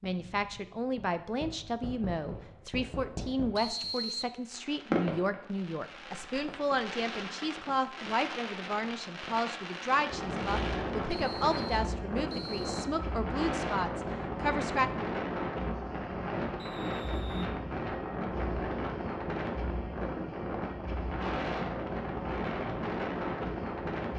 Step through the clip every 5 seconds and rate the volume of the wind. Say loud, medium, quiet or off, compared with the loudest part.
off, off, loud, loud, loud.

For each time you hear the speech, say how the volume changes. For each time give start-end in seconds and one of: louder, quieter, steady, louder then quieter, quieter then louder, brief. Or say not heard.
0.0-14.9 steady.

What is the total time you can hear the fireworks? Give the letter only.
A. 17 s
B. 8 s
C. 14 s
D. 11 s
D.